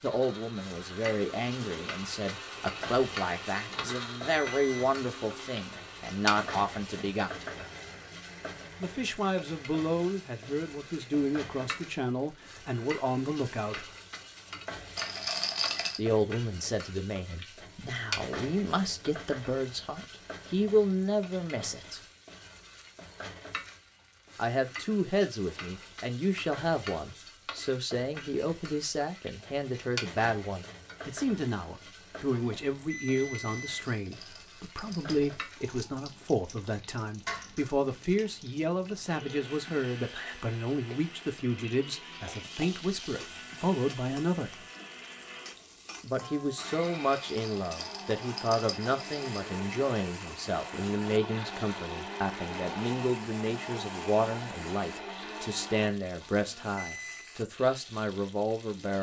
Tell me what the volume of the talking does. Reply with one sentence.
The loudness of the talking stays about the same.